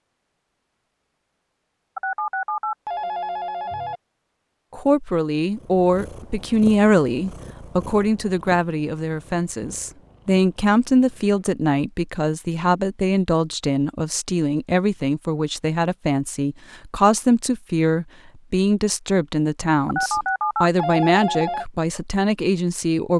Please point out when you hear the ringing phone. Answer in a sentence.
You can hear the ringing phone from 1.9 to 4.0 s and from 19.9 to 21.6 s.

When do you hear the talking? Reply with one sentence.
The talking can be heard from 4.7 to 23.1 s.